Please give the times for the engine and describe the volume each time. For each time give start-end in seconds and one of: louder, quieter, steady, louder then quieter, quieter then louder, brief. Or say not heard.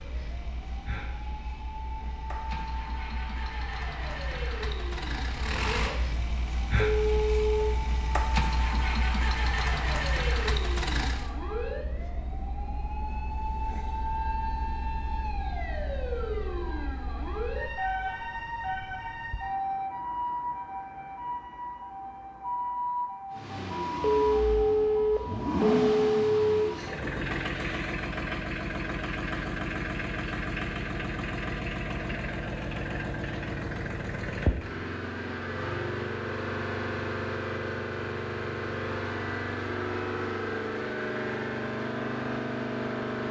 0.0-11.3 louder
23.3-43.2 steady.